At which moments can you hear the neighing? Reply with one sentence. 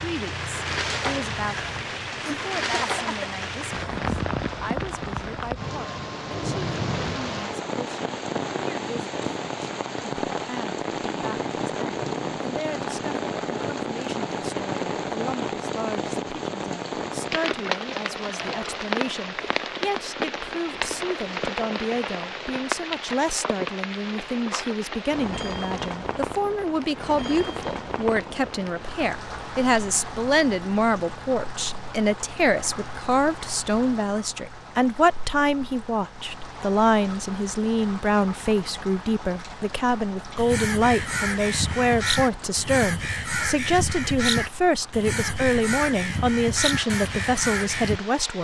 You can't hear the neighing here.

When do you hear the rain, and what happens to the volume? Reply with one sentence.
The rain can be heard from 0.0 to 48.3 s, getting quieter.